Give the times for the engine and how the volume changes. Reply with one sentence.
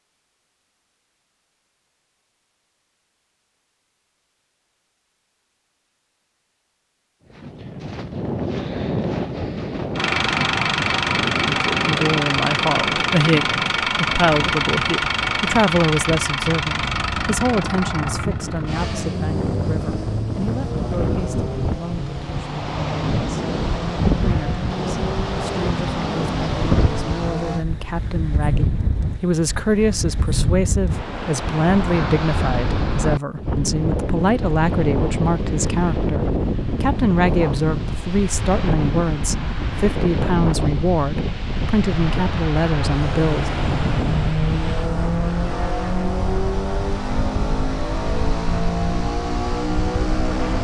The engine can be heard from 9.9 to 27.6 s, getting quieter; and from 42.9 to 50.5 s, at a steady volume.